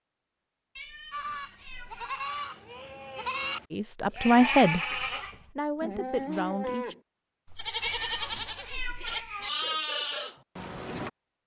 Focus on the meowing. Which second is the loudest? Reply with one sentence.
The volume of the meowing peaks at 8 seconds.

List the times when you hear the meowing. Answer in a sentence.
You can hear the meowing from 0.8 to 2.2 s and from 7.8 to 9.5 s.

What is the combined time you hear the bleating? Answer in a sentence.
You can hear the bleating for 10 seconds altogether.